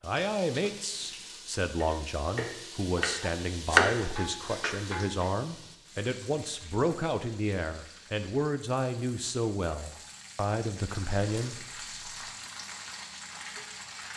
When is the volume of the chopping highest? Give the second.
4 s.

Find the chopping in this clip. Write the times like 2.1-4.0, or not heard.
1.8-4.9.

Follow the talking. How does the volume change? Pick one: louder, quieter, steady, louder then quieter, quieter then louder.
steady.